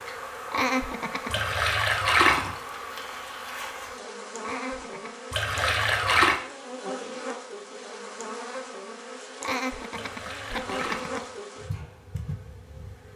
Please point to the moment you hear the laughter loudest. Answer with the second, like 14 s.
1 s.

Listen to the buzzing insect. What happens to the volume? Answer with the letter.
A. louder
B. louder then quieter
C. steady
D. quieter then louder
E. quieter
C.